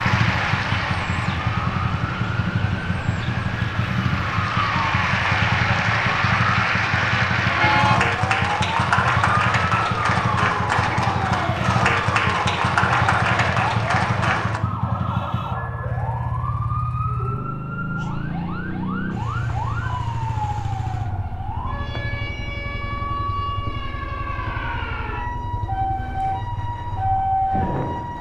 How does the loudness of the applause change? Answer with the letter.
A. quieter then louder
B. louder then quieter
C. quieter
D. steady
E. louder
E.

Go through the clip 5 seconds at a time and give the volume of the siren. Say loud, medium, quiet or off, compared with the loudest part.
loud, loud, loud, medium, medium, loud.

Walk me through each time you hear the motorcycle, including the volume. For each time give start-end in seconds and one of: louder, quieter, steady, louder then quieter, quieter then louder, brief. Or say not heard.
0.0-28.1 quieter.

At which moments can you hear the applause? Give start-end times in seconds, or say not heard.
0.0-14.6.